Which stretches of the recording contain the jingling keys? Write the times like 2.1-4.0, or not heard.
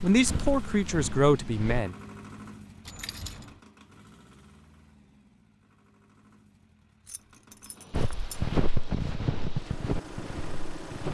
2.9-3.6, 7.0-8.4.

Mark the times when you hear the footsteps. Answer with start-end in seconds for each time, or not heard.
0.0-1.9, 7.9-11.0.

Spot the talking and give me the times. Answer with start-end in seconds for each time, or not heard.
0.0-1.9.